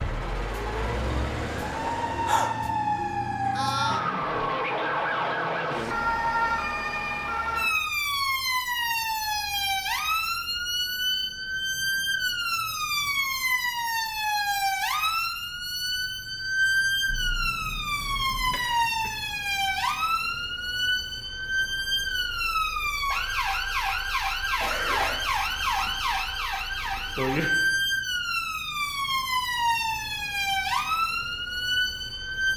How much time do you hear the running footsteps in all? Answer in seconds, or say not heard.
not heard.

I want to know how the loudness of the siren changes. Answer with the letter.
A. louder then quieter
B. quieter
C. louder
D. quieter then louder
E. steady
E.